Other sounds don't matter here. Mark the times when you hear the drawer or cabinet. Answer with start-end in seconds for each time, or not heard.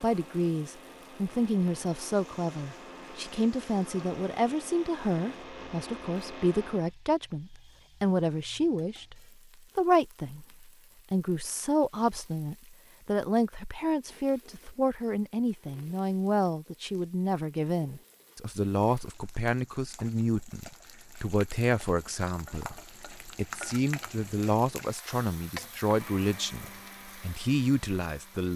not heard.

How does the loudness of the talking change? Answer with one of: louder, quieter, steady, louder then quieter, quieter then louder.
steady.